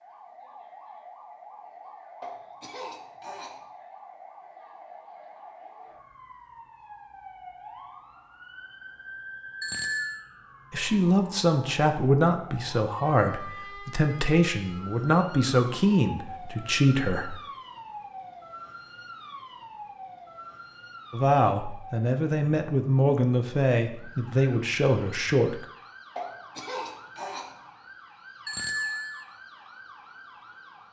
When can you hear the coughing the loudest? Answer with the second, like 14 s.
27 s.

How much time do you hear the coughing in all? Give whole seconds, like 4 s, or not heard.
3 s.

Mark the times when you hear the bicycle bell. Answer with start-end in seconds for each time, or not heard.
9.6-10.2, 28.4-29.2.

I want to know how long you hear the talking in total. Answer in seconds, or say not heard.
11 s.